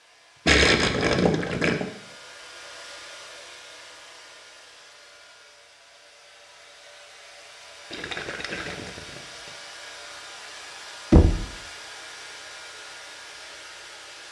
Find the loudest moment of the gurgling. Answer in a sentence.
The volume of the gurgling peaks at 1 second.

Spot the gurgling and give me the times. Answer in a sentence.
You can hear the gurgling from 0.5 to 1.8 s and from 7.9 to 9.5 s.